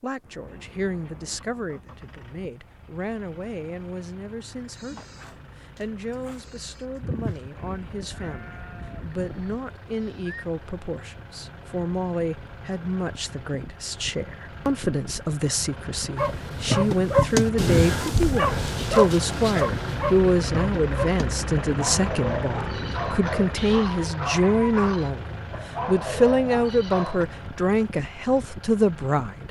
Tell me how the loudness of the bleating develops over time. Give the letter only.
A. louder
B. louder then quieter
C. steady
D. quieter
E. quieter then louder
B.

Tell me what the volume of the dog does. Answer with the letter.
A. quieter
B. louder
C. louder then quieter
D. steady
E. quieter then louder
A.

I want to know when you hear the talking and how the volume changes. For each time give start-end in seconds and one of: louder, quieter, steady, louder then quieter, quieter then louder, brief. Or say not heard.
0.0-29.4 louder.